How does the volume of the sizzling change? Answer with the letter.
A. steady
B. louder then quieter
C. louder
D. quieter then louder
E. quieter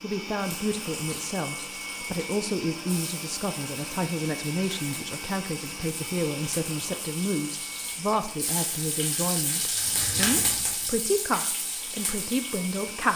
C.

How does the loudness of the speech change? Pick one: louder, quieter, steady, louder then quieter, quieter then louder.
steady.